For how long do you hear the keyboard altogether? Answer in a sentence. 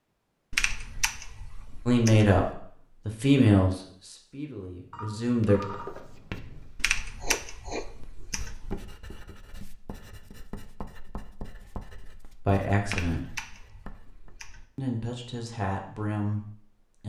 The keyboard can be heard for 6 seconds in total.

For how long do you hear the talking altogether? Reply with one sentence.
The talking can be heard for 7 seconds in total.